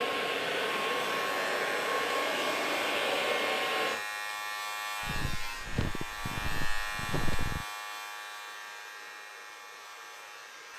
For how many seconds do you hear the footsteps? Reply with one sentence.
You can hear the footsteps for 3 seconds altogether.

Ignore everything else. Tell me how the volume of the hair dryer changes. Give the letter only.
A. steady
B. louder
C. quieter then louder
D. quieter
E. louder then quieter
D.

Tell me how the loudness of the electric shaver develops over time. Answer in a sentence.
The loudness of the electric shaver goes down.